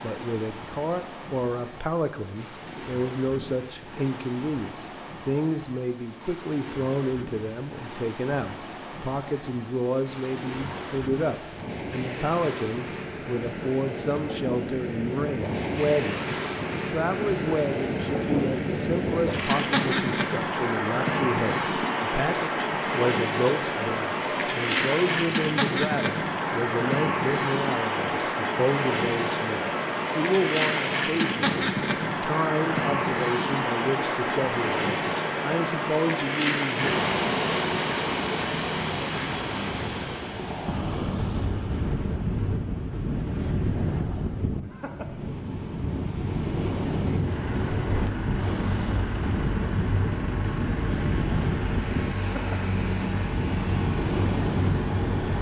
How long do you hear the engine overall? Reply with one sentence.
You can hear the engine for 8 seconds altogether.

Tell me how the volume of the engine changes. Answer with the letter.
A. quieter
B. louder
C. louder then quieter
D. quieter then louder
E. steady
E.